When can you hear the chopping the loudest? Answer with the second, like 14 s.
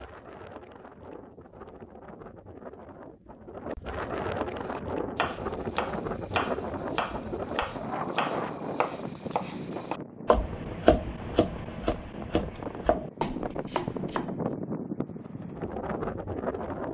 11 s.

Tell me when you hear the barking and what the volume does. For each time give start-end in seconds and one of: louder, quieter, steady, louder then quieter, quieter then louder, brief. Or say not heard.
not heard.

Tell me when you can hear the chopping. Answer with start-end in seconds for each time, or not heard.
4.7-14.3.